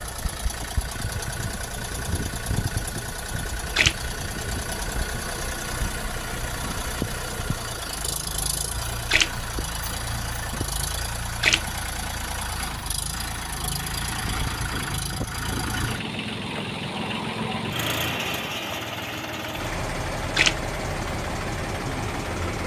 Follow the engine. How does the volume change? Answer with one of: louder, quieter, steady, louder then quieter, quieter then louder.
steady.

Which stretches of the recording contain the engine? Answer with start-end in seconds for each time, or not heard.
0.0-22.6.